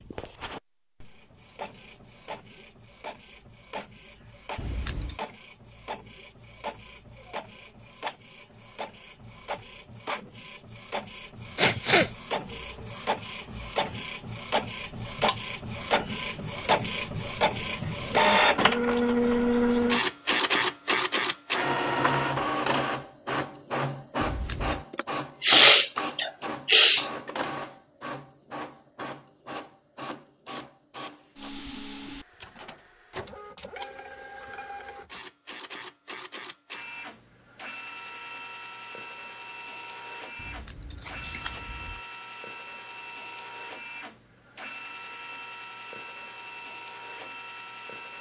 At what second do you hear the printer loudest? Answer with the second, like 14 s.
19 s.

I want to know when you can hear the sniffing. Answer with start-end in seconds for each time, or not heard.
11.6-12.1, 24.9-27.1.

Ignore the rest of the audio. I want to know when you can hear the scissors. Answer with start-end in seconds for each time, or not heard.
4.5-5.2, 24.2-24.9, 40.4-42.0.